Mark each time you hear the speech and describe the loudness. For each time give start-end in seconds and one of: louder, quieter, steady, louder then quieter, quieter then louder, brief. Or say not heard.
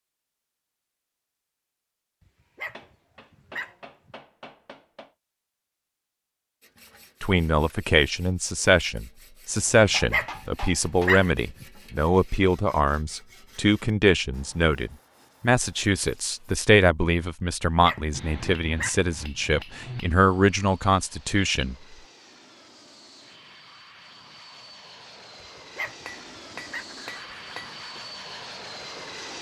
7.2-21.8 steady.